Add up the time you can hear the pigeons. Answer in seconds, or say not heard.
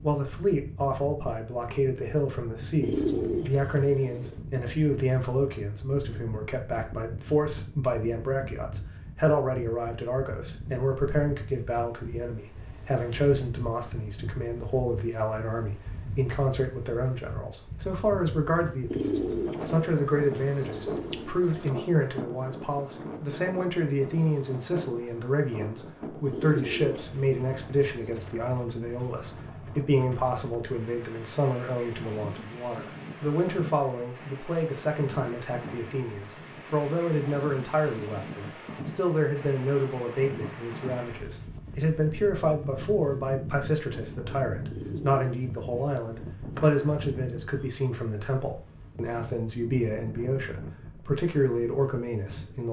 8 s.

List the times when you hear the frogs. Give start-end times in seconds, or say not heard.
not heard.